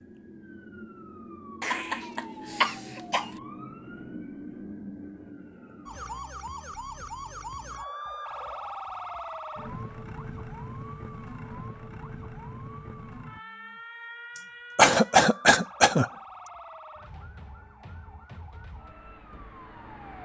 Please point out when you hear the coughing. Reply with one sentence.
You can hear the coughing from 1.6 to 3.3 s and from 14.3 to 16.5 s.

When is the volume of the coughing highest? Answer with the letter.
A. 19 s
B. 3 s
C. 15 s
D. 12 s
C.